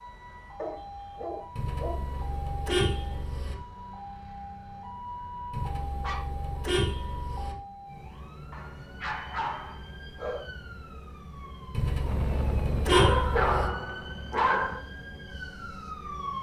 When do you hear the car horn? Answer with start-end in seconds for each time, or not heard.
1.6-3.5, 5.5-7.5, 11.7-13.7.